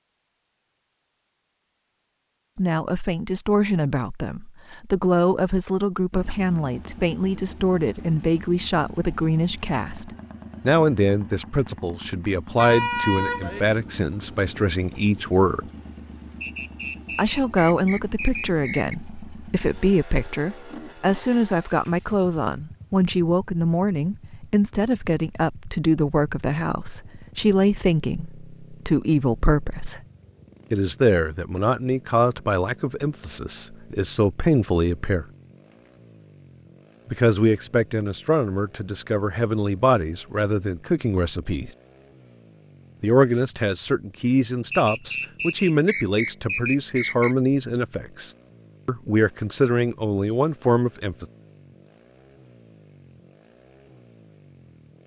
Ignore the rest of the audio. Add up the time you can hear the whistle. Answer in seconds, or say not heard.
5 s.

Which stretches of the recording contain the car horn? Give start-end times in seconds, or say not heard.
12.6-13.7.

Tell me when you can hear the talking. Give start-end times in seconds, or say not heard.
2.5-15.7, 17.1-30.0, 30.7-35.2, 37.1-41.7, 43.0-51.2.